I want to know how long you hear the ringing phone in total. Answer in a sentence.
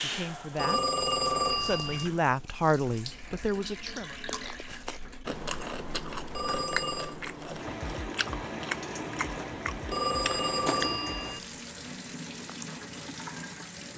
The ringing phone can be heard for 4 seconds in total.